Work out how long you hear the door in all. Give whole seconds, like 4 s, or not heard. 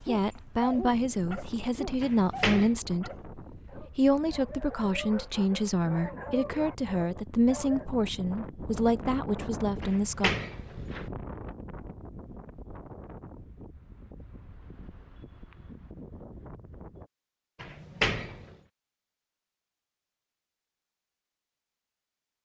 3 s.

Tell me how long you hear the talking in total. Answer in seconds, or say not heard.
10 s.